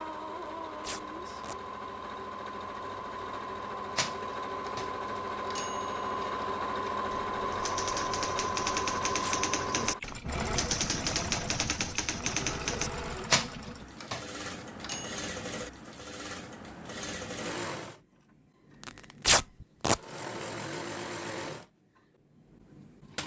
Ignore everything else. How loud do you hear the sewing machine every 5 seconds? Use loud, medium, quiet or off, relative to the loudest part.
medium, loud, medium, medium, medium.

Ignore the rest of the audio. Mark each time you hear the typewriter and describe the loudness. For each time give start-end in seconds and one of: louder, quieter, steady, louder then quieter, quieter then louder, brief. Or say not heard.
3.9-15.2 louder.